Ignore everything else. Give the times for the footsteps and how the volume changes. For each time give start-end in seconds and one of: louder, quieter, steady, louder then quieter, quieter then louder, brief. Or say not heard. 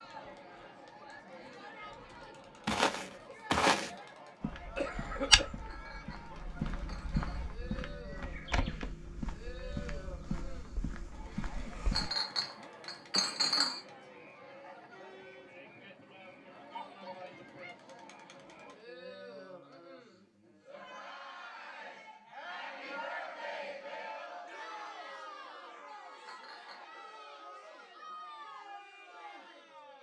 2.6-12.1 quieter.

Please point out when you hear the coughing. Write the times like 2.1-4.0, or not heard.
4.8-5.7.